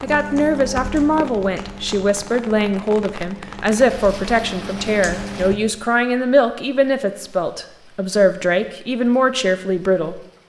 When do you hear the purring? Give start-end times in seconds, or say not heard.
not heard.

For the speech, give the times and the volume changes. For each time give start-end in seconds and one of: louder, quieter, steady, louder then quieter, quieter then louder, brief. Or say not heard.
0.0-10.2 steady.